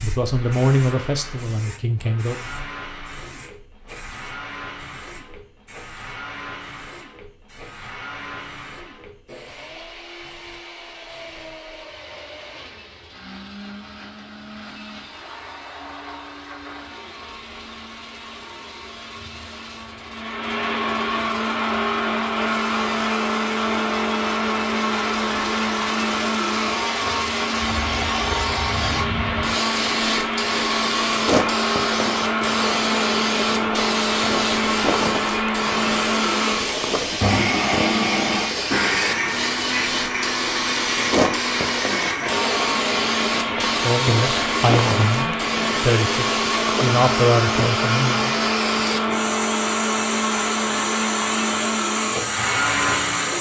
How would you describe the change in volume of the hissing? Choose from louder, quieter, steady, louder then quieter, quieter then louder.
louder.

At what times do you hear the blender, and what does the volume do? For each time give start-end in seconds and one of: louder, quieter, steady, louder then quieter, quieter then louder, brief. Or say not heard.
0.1-53.3 louder.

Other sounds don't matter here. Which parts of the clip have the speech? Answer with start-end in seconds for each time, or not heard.
0.0-2.4, 43.8-48.4.